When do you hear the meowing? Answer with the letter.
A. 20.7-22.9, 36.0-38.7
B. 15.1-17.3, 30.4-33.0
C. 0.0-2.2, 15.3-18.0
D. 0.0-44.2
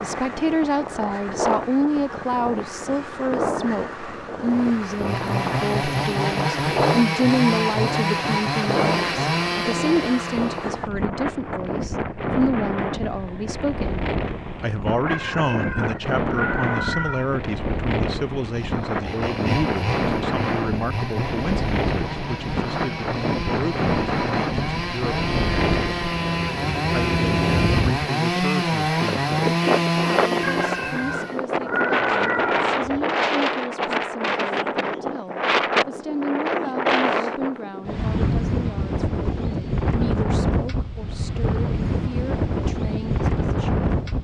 B.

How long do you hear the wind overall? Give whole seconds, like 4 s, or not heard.
44 s.